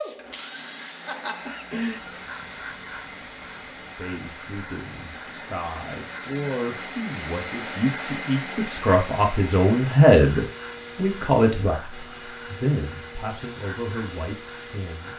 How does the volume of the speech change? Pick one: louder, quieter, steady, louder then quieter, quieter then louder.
louder then quieter.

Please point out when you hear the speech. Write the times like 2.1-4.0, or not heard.
4.0-15.1.